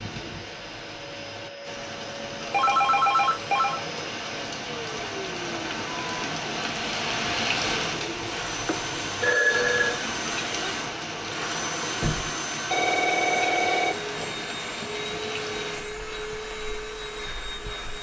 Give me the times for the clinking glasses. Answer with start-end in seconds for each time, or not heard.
not heard.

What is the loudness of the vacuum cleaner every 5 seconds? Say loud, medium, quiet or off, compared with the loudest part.
medium, loud, loud, loud.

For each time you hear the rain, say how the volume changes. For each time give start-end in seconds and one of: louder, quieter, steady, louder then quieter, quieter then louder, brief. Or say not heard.
0.0-17.9 louder then quieter.